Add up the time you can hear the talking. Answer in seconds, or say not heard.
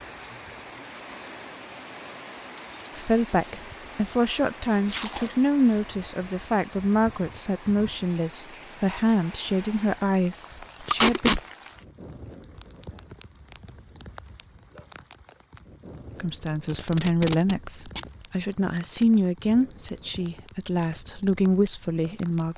15 s.